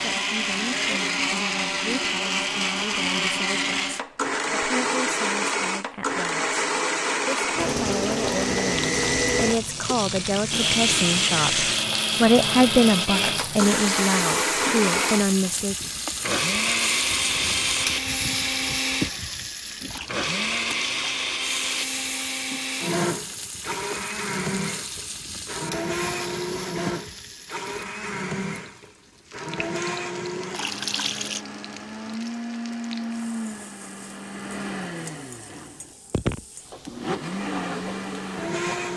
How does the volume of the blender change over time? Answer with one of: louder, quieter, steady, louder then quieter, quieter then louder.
quieter.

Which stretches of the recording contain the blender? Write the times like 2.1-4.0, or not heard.
0.0-38.9.